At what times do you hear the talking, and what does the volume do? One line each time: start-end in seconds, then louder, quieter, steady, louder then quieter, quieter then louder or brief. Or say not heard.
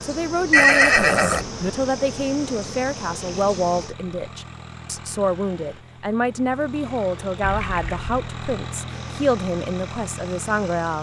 0.0-10.9 steady.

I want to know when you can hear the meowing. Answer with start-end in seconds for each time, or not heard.
not heard.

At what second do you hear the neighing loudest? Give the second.
1 s.